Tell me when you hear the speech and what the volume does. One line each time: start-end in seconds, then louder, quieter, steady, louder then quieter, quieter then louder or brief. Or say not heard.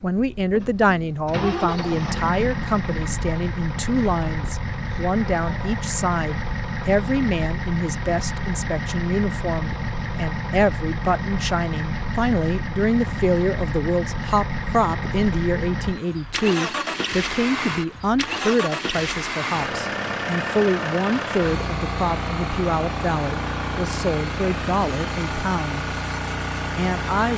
0.0-25.9 steady
26.8-27.3 brief.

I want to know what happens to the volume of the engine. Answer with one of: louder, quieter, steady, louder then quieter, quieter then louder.
steady.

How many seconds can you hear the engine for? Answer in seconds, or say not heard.
27 s.